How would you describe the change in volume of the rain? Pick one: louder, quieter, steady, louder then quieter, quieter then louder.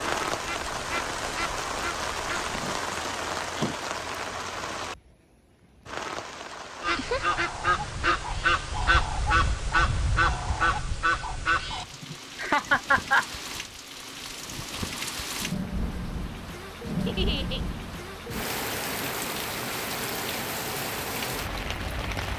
quieter then louder.